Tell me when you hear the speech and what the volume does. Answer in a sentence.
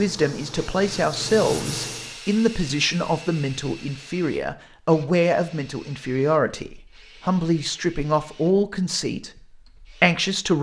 You can hear the speech from 0.0 to 10.5 s, at a steady volume.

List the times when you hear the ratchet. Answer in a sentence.
You can't hear the ratchet here.